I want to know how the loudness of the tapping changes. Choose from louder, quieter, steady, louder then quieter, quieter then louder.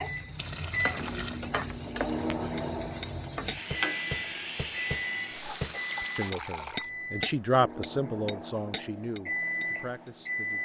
louder then quieter.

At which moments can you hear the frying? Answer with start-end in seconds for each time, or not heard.
0.0-6.3.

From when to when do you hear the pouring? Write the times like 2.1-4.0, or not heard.
0.3-1.4, 5.8-6.9.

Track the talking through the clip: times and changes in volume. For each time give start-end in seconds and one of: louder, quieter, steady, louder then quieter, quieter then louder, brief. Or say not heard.
6.2-10.5 louder then quieter.